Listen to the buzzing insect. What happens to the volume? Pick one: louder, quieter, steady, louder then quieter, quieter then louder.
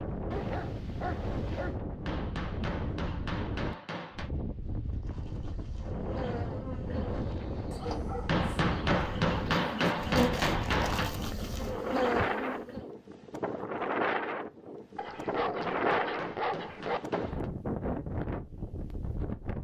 louder.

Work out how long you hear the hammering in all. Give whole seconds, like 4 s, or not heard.
7 s.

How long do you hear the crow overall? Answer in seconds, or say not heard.
not heard.